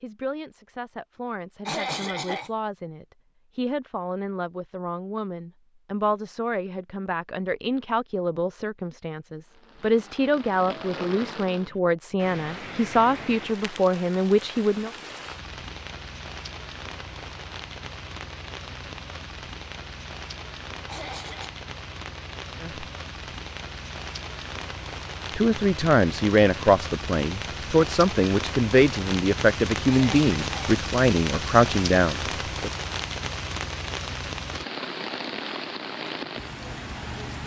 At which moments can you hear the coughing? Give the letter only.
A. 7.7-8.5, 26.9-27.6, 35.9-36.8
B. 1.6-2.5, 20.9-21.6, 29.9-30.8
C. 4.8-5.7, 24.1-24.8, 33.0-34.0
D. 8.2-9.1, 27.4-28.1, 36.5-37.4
B.